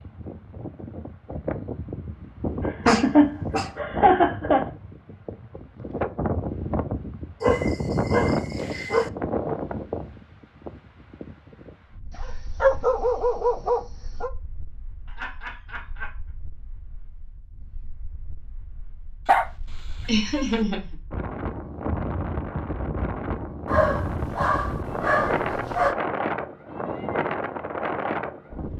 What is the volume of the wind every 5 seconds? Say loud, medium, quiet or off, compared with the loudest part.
medium, loud, quiet, quiet, loud, loud.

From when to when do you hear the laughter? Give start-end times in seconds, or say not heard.
2.6-4.7, 15.1-16.1, 20.1-20.8.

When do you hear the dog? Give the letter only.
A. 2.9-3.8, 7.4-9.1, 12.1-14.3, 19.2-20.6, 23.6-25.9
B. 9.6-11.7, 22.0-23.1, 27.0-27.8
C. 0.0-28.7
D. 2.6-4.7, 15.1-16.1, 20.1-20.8
A.